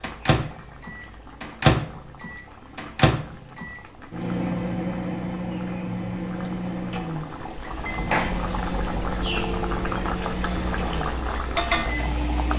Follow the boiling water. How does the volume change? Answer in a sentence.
The loudness of the boiling water goes up.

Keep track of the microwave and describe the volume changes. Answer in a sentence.
The loudness of the microwave goes down.